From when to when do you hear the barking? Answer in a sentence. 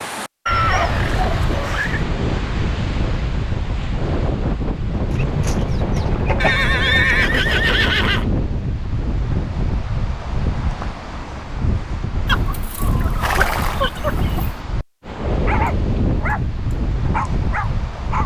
You can hear the barking from 15.4 to 18.2 s.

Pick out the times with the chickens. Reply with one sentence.
The chickens can be heard from 5.1 to 7.0 s and from 12.2 to 14.6 s.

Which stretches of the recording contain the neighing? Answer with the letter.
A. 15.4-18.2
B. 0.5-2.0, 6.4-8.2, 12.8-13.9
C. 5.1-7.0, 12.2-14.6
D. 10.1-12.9
B.